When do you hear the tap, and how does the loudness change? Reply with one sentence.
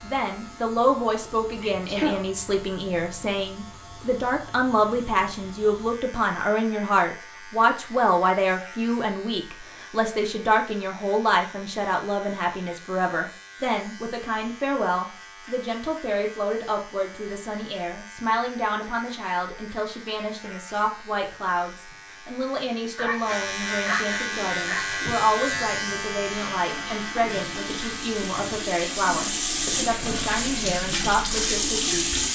You can hear the tap from 24.2 to 32.3 s, getting louder.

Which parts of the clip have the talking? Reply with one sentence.
The talking can be heard from 0.0 to 32.2 s.